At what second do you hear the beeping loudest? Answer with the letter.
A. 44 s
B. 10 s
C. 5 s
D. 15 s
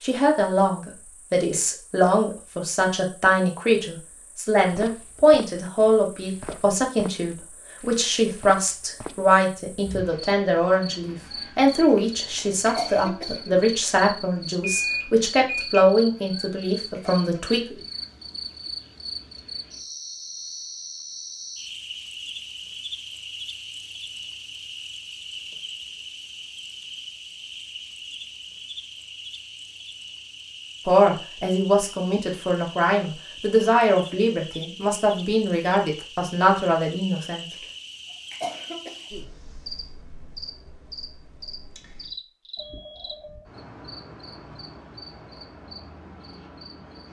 D.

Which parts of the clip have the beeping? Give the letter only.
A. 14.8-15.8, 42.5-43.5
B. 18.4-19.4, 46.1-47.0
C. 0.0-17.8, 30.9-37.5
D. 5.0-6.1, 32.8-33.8
A.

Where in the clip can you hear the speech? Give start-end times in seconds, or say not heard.
0.0-17.8, 30.9-37.5.